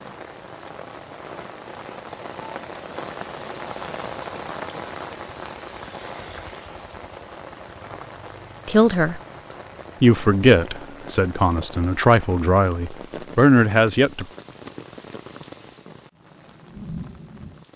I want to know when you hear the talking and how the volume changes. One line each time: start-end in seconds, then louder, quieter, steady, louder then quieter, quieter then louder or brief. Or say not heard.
8.7-9.2 brief
10.0-14.2 quieter then louder.